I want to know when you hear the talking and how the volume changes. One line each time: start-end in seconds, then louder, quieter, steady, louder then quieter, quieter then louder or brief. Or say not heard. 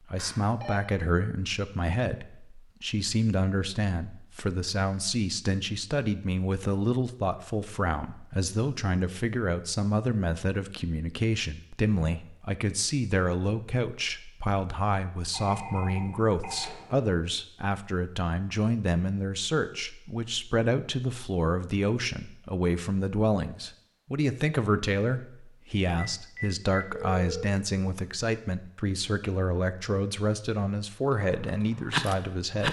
0.1-32.6 steady.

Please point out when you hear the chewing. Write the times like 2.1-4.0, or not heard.
31.1-32.6.